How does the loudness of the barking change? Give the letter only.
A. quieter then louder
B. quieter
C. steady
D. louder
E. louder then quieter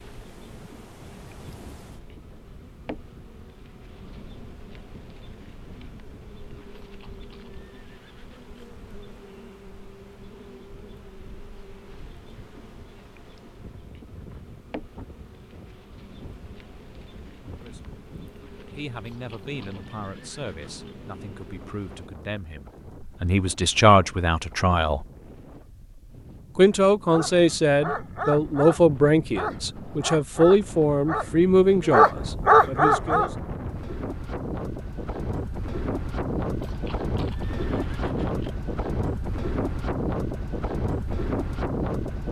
D.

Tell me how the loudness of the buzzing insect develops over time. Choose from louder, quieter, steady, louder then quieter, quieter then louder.
steady.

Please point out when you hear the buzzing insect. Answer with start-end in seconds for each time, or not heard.
0.0-22.1.